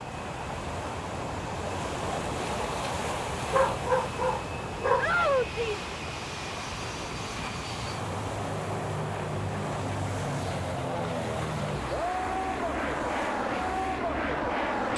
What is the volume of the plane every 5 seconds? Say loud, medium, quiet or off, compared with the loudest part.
medium, medium, loud.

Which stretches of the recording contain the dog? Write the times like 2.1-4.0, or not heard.
3.5-5.1.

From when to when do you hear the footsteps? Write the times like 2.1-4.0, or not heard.
not heard.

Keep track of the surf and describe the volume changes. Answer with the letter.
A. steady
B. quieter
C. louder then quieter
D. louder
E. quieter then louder
B.